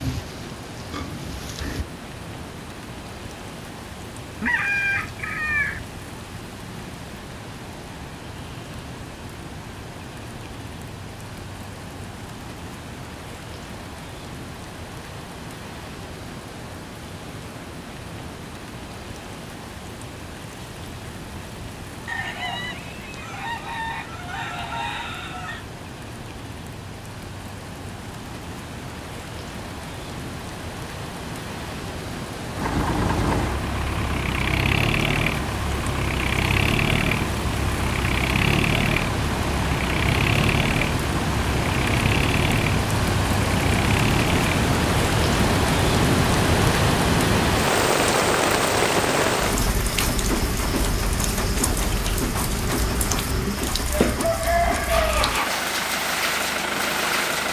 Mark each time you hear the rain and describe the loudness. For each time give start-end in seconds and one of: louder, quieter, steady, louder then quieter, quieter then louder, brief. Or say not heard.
0.0-57.4 louder.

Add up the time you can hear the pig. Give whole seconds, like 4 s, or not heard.
2 s.